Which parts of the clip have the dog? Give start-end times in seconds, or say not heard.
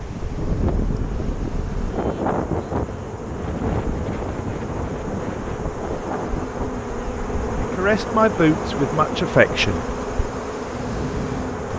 not heard.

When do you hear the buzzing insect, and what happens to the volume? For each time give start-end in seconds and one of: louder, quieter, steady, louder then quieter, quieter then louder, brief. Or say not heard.
0.0-11.7 louder.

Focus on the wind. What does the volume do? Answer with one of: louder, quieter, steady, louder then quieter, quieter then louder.
quieter.